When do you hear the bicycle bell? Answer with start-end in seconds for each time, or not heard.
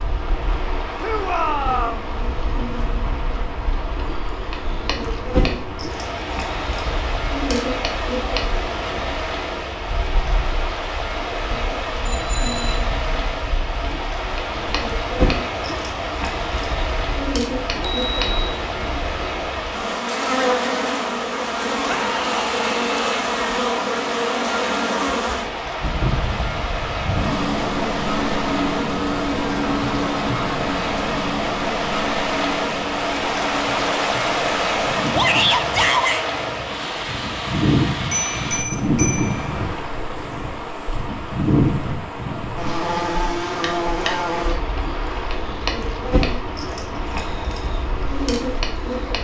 12.1-12.8, 17.7-18.6, 38.1-39.5.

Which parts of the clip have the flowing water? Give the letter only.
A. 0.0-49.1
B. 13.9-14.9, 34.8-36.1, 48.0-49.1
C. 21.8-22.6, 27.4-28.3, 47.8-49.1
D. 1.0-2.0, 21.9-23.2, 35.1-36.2
A.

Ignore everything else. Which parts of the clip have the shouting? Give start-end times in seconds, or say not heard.
1.0-2.0, 21.9-23.2, 35.1-36.2.